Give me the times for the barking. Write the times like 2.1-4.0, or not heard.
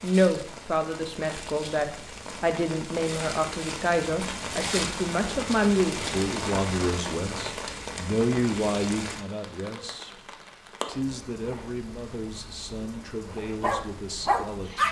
13.6-14.8.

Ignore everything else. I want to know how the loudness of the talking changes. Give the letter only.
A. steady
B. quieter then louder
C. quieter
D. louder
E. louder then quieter
C.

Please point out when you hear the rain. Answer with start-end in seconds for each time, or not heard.
0.0-14.8.